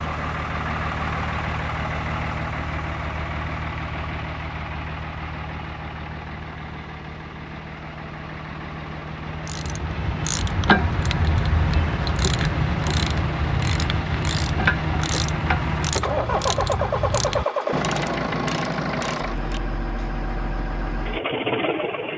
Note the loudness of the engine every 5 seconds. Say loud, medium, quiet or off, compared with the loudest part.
loud, medium, loud, loud, loud.